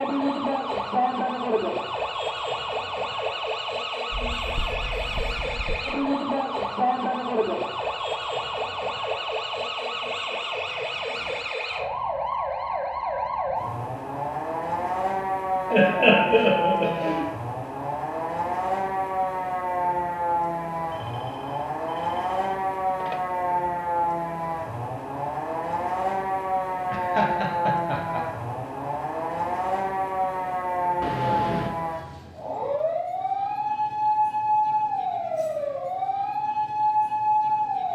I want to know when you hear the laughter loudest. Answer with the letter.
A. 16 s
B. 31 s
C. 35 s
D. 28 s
A.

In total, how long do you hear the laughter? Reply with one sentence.
You can hear the laughter for 3 seconds altogether.